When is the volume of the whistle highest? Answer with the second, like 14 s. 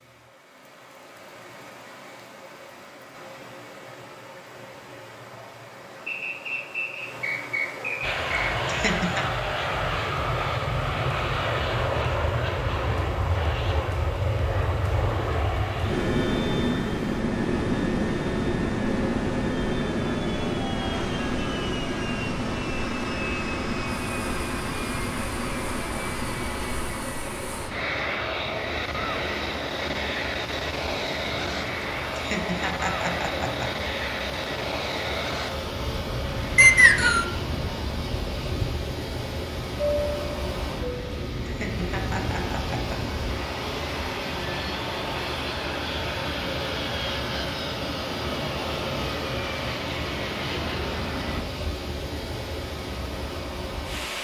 37 s.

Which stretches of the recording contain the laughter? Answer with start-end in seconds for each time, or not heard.
8.7-9.3, 32.1-33.8, 41.5-43.0.